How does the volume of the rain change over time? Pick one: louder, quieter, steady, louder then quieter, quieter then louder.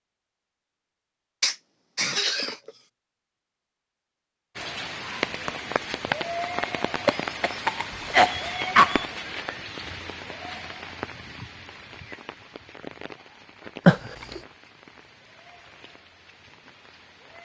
quieter.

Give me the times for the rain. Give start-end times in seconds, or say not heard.
4.5-17.4.